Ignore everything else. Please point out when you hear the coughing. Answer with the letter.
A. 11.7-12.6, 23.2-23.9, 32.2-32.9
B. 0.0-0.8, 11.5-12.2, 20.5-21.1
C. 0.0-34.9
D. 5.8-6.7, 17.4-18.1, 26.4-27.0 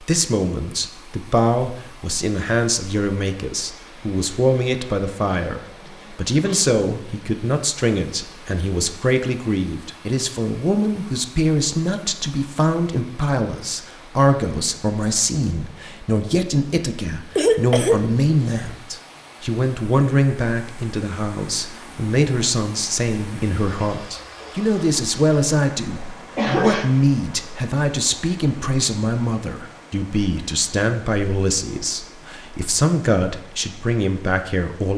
D.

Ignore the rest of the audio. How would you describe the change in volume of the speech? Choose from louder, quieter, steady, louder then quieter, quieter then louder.
steady.